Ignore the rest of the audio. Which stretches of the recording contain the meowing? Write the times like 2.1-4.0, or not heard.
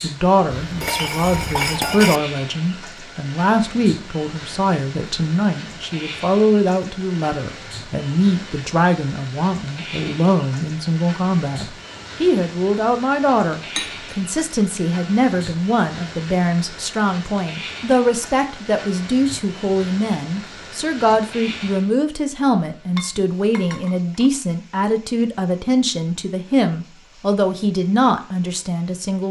not heard.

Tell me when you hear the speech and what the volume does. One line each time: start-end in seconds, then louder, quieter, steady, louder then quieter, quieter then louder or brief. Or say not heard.
0.0-29.2 steady.